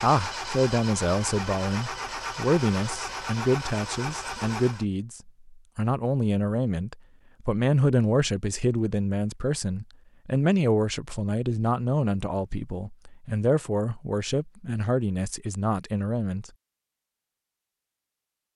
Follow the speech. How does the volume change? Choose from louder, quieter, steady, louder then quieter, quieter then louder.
steady.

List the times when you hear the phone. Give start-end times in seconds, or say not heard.
not heard.